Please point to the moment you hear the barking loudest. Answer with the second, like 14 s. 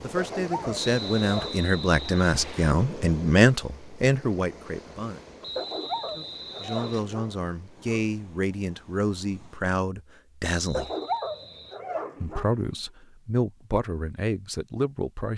11 s.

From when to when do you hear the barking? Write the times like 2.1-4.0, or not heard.
0.1-1.6, 5.5-8.1, 10.7-12.7.